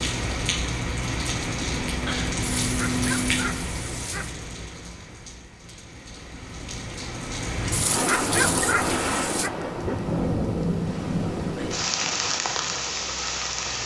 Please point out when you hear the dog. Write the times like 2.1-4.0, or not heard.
2.6-4.3, 7.7-9.5.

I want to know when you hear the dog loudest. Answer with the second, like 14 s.
8 s.